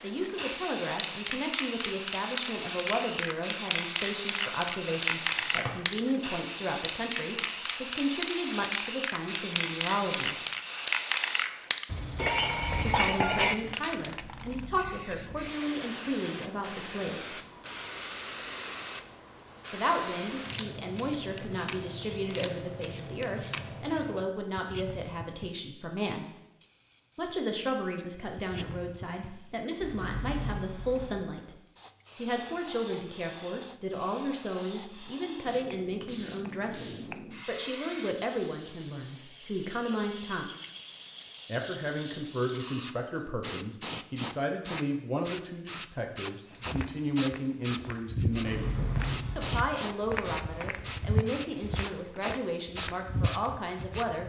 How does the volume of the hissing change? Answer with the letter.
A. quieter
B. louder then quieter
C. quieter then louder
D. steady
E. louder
C.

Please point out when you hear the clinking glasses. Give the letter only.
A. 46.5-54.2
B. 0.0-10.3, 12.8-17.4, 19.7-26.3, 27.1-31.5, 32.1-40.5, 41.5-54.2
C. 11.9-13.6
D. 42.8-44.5
C.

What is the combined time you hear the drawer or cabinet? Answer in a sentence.
The drawer or cabinet can be heard for 3 seconds in total.